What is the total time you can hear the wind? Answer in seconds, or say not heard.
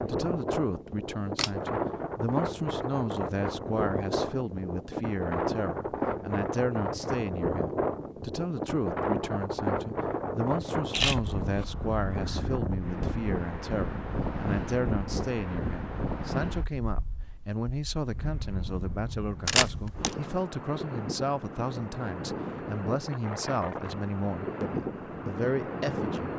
26 s.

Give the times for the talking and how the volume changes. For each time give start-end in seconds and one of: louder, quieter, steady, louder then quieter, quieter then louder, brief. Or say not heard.
0.1-26.3 steady.